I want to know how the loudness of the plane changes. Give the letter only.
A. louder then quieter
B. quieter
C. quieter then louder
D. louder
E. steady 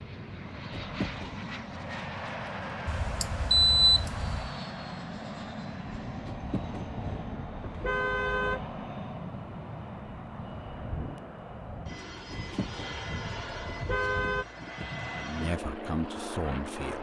E.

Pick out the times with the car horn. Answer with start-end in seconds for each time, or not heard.
0.7-1.4, 6.2-8.7, 12.3-14.4.